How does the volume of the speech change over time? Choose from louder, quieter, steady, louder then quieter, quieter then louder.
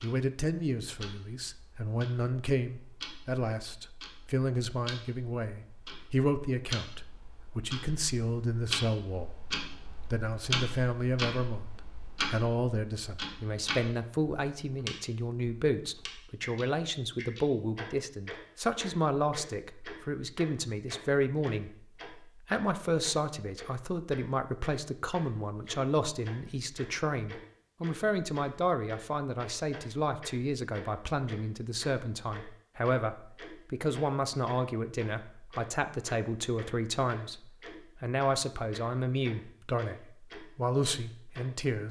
steady.